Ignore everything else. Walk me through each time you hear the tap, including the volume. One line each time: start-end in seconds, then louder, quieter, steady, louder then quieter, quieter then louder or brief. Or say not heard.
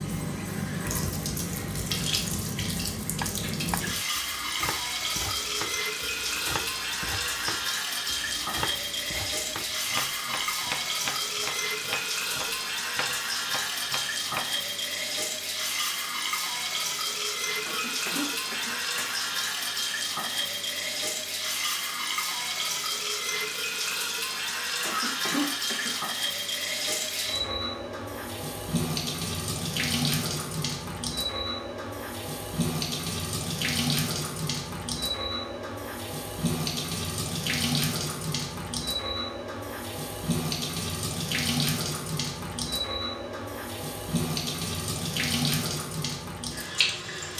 0.0-47.3 steady.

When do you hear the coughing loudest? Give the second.
25 s.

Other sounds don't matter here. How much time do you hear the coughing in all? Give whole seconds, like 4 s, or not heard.
3 s.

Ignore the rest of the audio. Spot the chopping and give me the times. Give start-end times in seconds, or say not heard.
3.2-14.6.